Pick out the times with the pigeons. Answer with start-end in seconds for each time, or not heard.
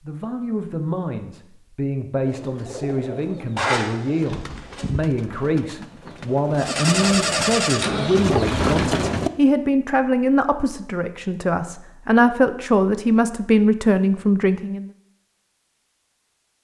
2.2-9.3.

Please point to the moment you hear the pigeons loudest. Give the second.
9 s.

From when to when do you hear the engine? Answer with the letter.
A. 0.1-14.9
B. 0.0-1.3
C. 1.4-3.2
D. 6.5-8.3
D.